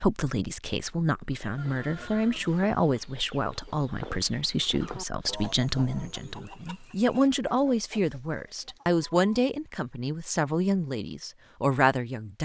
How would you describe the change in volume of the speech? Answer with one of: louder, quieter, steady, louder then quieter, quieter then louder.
steady.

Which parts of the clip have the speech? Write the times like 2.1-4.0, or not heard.
0.0-12.4.